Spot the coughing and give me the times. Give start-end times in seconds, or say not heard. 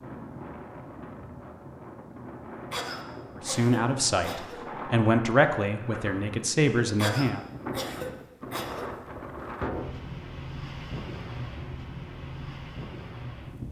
2.7-4.6, 7.0-8.9.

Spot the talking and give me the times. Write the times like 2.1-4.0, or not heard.
3.4-7.5.